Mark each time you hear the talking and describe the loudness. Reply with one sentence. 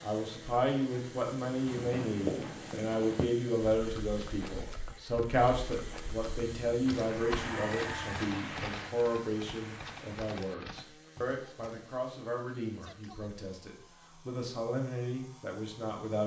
You can hear the talking from 0.0 to 16.2 s, getting quieter.